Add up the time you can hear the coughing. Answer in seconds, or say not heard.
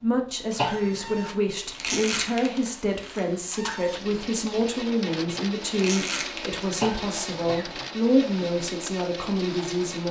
2 s.